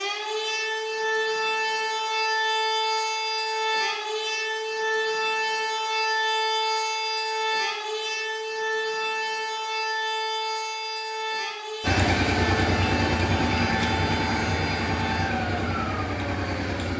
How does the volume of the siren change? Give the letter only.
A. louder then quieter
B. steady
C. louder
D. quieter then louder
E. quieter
E.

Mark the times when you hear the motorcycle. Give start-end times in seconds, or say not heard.
11.8-16.9.